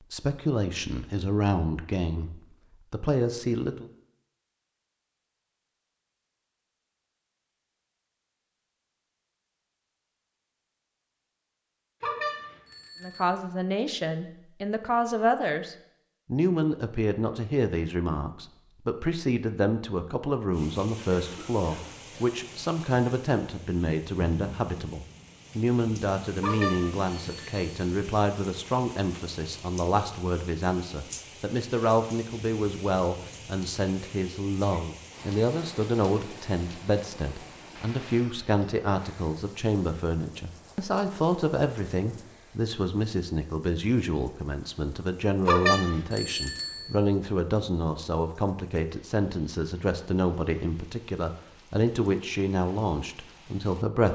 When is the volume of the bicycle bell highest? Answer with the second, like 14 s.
46 s.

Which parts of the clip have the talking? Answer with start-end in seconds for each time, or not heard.
0.1-3.9, 13.0-54.1.